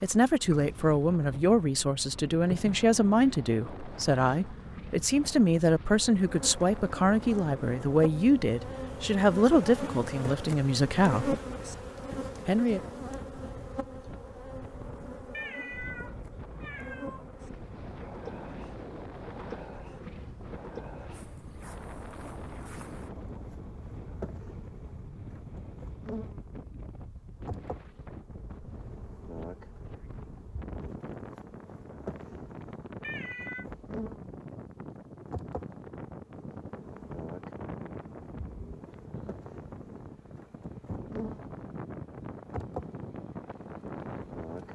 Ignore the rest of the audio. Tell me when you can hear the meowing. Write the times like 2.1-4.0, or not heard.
15.3-17.2, 33.0-33.6.